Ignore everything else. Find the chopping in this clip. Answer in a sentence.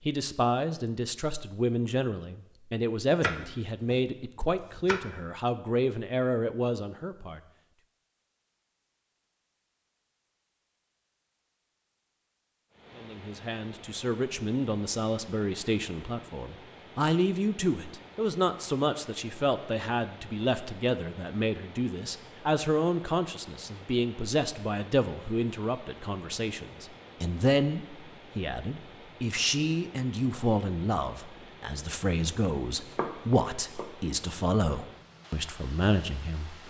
You can hear the chopping from 3.2 to 5.0 s and from 32.9 to 33.9 s.